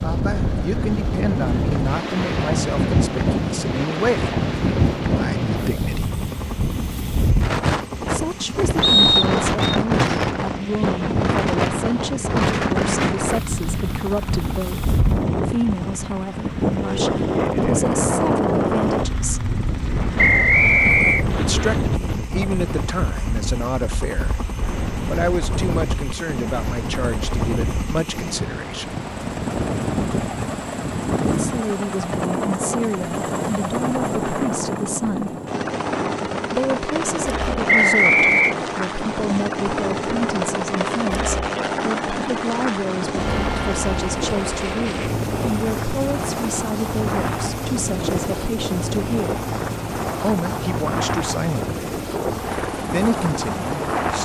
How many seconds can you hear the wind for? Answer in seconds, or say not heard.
54 s.